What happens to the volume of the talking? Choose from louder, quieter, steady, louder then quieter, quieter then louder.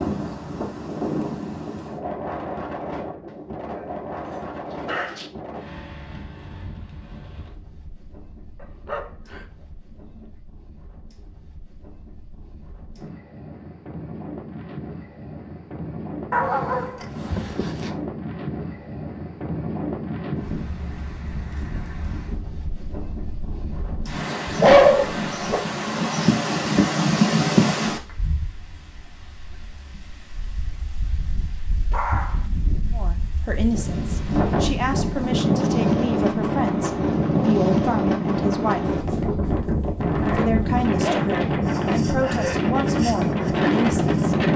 steady.